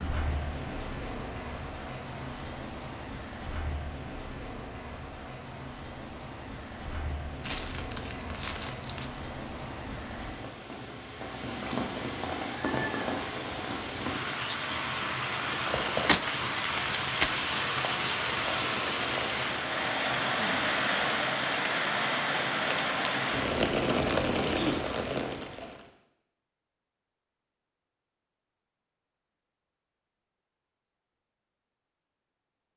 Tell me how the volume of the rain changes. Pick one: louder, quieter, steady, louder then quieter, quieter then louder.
louder.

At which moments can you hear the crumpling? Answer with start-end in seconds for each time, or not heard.
7.4-9.1, 15.5-17.4, 22.7-23.4.